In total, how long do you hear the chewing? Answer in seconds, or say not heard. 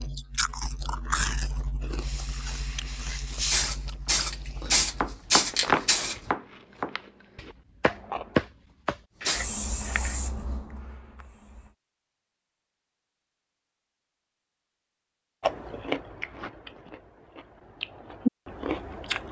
12 s.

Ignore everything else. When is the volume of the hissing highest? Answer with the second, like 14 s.
5 s.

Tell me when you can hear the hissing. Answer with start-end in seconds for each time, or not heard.
1.9-6.2, 9.2-11.8.